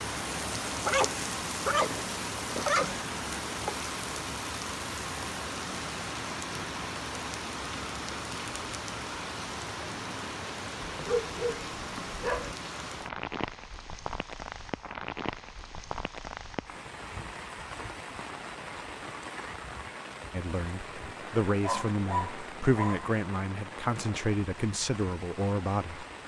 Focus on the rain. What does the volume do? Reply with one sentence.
The volume of the rain goes down.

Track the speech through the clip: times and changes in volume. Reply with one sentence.
The speech can be heard from 20.3 to 26.1 s, at a steady volume.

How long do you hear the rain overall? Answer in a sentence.
The rain can be heard for 26 seconds in total.